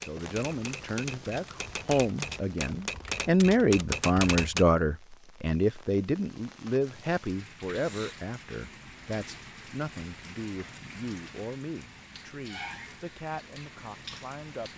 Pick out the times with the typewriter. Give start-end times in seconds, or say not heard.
0.0-4.7.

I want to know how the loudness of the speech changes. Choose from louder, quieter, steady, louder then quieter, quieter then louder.
louder then quieter.